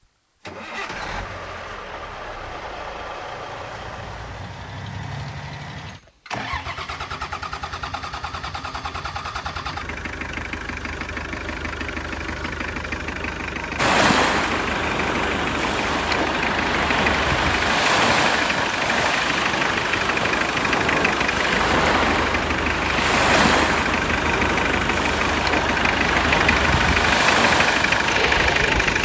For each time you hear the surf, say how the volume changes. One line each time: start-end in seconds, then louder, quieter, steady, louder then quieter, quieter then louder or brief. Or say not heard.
13.8-29.0 steady.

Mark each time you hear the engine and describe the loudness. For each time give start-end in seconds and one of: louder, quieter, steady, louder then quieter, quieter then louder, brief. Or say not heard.
0.4-29.0 louder.